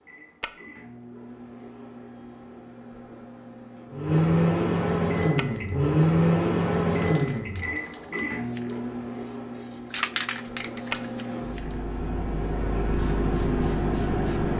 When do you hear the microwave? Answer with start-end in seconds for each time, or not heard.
0.0-14.5.